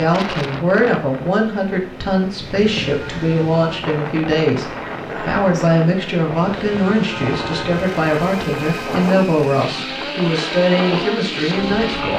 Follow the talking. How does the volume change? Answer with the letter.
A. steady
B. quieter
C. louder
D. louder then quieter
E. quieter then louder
A.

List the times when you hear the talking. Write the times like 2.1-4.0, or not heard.
0.0-12.1.